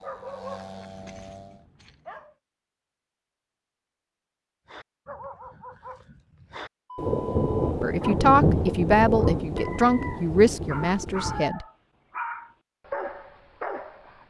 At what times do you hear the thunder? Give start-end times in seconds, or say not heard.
7.0-11.4.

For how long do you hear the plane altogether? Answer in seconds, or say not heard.
2 s.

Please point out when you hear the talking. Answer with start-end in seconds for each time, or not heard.
7.8-11.7.